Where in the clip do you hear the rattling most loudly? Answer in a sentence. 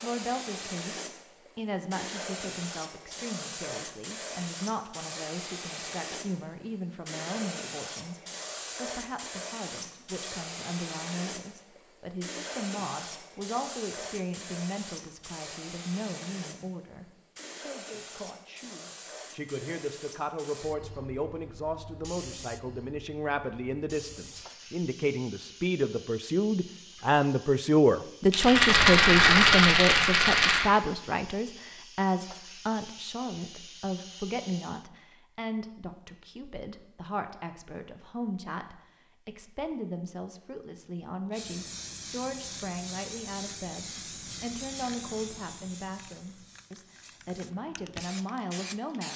The loudest moment of the rattling is at 29 seconds.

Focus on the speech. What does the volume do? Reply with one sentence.
The loudness of the speech goes up, then down.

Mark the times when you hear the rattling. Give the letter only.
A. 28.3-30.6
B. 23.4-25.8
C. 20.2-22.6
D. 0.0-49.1
A.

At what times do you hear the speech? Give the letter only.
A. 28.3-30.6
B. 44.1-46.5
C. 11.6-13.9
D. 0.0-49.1
D.